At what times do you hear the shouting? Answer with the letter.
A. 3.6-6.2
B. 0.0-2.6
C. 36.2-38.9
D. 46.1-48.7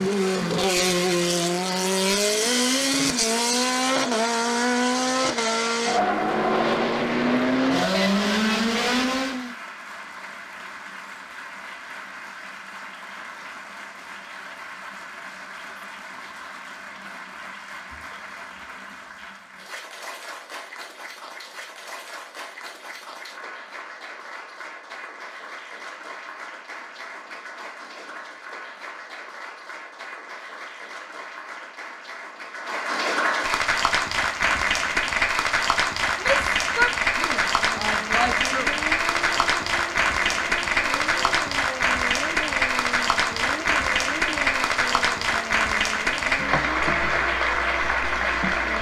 C.